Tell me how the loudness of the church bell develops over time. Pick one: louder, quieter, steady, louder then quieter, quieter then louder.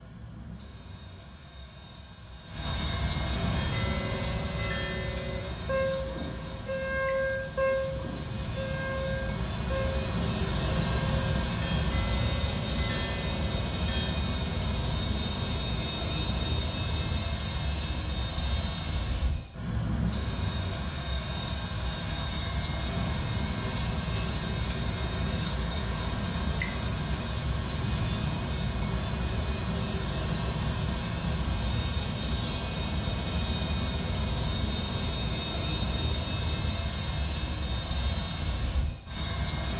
louder then quieter.